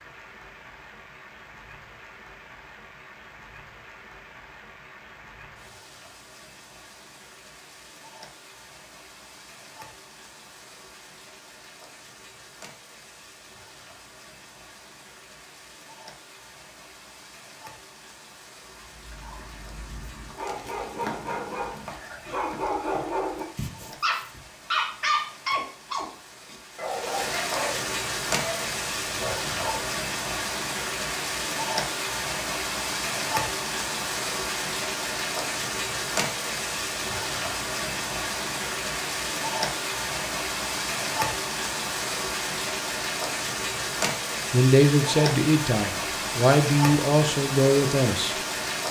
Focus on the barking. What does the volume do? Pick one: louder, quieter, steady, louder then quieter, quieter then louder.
louder then quieter.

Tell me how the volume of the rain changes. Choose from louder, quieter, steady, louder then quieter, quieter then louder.
louder.